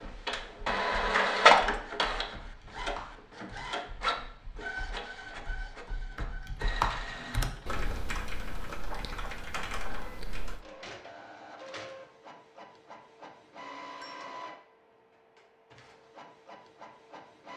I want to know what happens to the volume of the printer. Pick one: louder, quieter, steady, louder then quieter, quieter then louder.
quieter.